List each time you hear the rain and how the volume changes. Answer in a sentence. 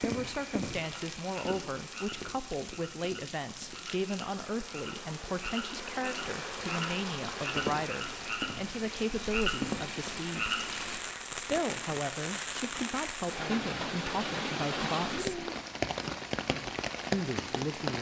The rain can be heard from 0.0 to 17.9 s, getting louder.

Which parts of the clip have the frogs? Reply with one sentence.
The frogs can be heard from 0.0 to 11.0 s.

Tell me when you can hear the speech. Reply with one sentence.
You can hear the speech from 0.0 to 10.6 s, from 11.3 to 15.3 s and from 17.1 to 17.9 s.